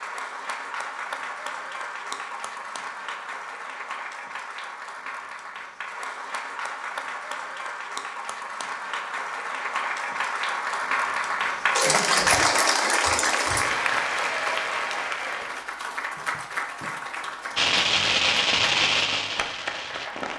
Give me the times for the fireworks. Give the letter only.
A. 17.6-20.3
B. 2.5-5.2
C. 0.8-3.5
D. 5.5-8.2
A.